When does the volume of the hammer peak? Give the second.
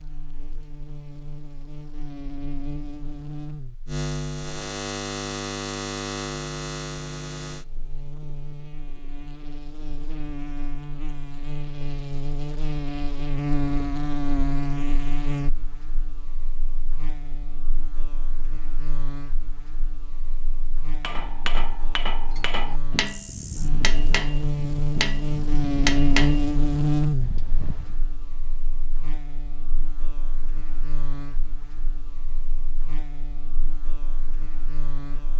26 s.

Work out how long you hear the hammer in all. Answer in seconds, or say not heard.
7 s.